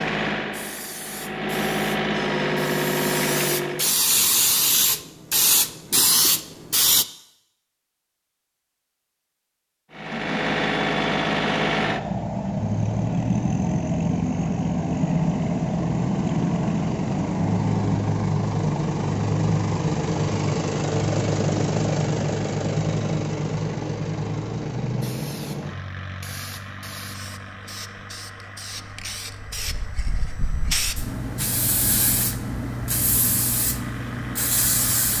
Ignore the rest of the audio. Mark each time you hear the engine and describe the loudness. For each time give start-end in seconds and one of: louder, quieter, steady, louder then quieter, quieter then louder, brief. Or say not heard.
0.0-4.0 louder
9.9-35.1 quieter.